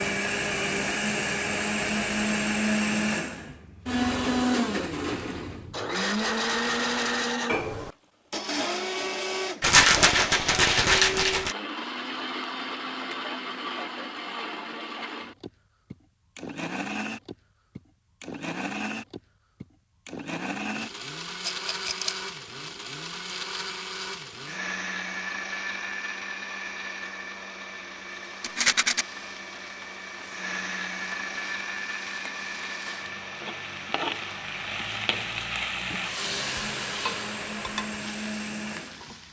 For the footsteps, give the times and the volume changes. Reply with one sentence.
You can't hear the footsteps here.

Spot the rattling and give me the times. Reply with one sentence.
You can hear the rattling from 9.6 to 11.6 s, from 21.4 to 22.1 s and from 28.4 to 29.1 s.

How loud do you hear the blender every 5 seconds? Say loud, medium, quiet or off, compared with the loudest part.
loud, loud, medium, medium, medium, medium, medium, medium.